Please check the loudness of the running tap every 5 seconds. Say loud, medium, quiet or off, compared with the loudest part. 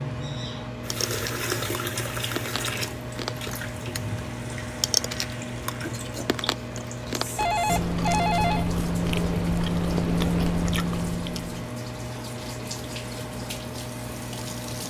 loud, medium, medium.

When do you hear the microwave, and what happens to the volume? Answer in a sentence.
You can hear the microwave from 0.0 to 14.8 s, at a steady volume.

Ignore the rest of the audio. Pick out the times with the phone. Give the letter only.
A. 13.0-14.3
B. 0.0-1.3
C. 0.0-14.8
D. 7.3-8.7
D.